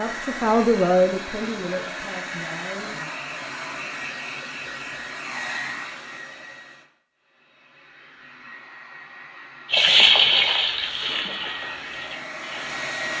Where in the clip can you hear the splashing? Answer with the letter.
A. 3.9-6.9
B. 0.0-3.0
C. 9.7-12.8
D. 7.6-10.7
C.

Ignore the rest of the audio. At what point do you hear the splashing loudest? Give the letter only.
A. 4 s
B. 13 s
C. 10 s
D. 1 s
C.